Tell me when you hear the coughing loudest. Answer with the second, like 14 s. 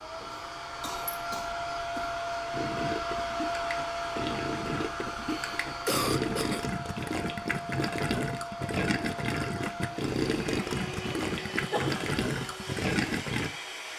6 s.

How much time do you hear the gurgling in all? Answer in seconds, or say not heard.
11 s.